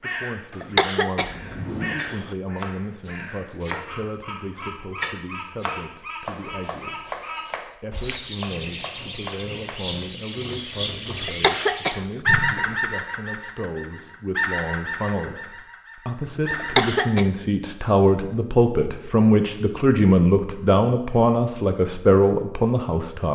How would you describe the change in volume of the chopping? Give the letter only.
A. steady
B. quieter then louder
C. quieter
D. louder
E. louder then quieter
E.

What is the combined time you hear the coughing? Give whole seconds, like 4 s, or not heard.
4 s.